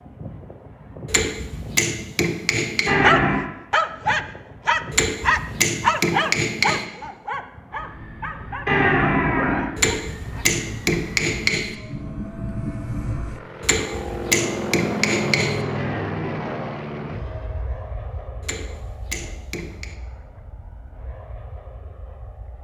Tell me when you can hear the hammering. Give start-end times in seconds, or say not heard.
1.1-3.0, 4.9-6.8, 9.8-11.8, 13.6-15.6, 18.4-19.9.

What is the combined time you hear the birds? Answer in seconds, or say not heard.
not heard.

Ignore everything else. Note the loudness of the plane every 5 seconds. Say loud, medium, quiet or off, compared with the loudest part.
medium, medium, loud, loud, quiet.